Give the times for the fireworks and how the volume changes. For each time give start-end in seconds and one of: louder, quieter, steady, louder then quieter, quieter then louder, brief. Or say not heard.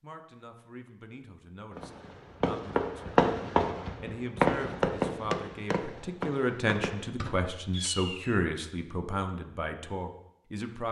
1.8-8.4 quieter.